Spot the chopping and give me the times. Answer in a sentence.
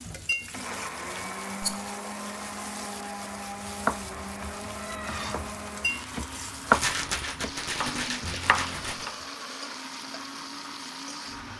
The chopping can be heard from 3.4 to 9.2 s.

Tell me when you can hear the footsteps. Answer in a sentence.
You can't hear the footsteps here.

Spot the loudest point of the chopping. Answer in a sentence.
The volume of the chopping peaks at 7 seconds.